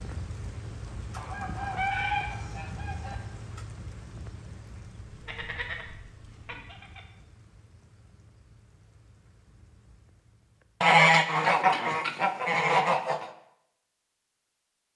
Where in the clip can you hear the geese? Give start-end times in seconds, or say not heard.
1.1-3.1, 5.0-7.0, 10.8-13.2.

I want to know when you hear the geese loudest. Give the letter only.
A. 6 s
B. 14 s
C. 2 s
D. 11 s
D.